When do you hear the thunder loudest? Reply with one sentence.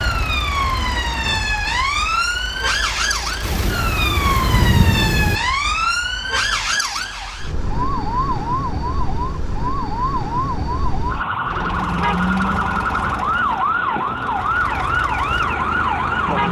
The volume of the thunder peaks at 5 seconds.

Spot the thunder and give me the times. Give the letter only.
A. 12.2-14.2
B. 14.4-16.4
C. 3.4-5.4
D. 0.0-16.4
C.